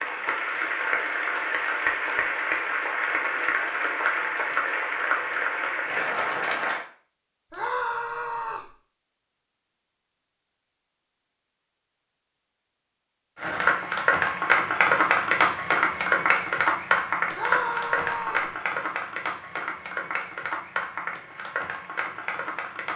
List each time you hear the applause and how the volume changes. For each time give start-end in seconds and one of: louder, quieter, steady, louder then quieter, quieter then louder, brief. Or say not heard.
0.0-6.8 steady
13.3-22.9 quieter.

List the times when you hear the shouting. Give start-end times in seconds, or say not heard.
7.5-8.7, 17.3-18.5.